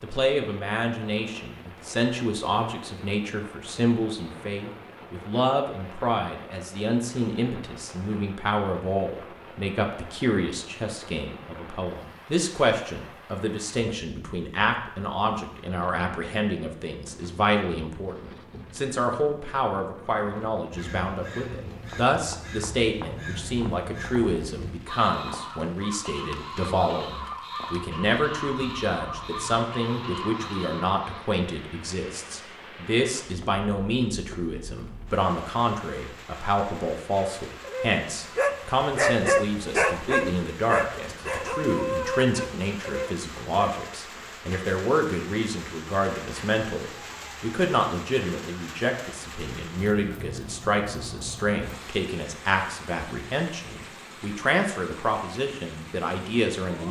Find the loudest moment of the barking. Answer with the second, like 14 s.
39 s.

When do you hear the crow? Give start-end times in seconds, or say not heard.
20.1-31.3.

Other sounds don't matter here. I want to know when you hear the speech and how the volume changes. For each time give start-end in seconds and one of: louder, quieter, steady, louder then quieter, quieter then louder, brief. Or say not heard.
0.0-56.8 steady.